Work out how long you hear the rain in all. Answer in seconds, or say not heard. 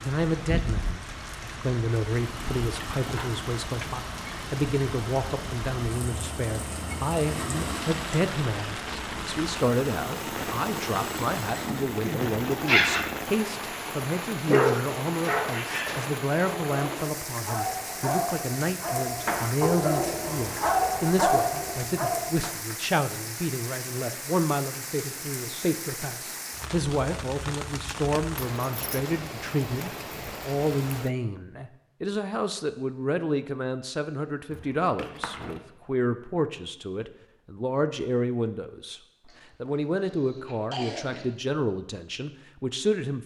31 s.